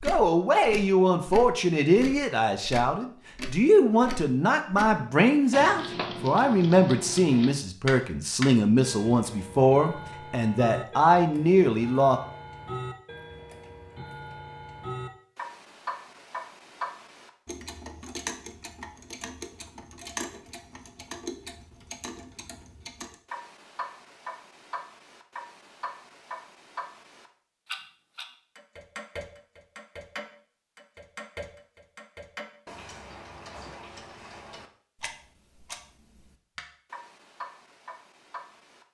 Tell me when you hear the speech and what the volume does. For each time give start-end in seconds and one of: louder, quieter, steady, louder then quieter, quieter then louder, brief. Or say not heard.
0.0-12.2 steady.